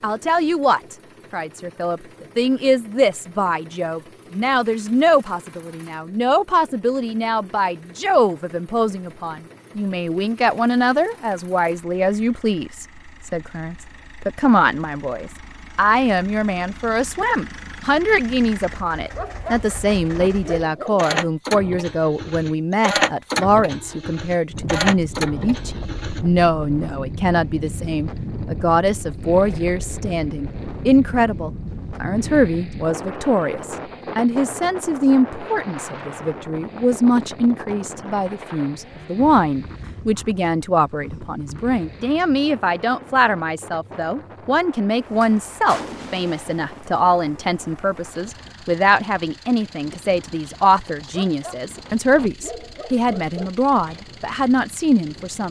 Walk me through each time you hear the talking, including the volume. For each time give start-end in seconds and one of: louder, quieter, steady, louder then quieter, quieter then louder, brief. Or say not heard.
0.0-55.4 steady.